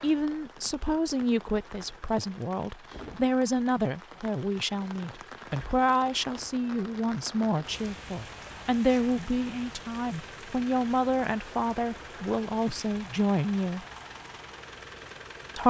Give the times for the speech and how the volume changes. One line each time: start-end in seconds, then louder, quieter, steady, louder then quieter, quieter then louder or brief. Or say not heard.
0.0-13.8 steady.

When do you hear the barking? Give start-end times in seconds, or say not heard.
not heard.